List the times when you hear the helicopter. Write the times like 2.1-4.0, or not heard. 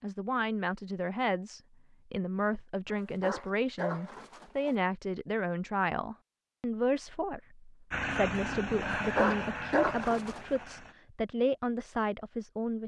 7.9-10.9.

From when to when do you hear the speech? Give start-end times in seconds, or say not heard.
0.0-12.8.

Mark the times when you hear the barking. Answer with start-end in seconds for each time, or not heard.
2.9-4.8, 8.9-10.7.